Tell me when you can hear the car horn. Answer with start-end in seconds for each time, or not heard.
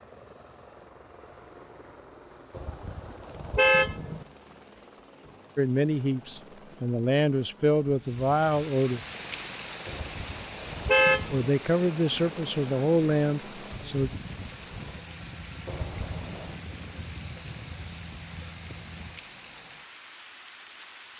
2.5-4.2, 9.8-11.5, 15.7-16.6.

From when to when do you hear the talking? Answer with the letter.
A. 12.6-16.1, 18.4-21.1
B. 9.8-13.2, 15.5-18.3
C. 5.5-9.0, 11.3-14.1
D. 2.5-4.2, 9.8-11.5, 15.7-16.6
C.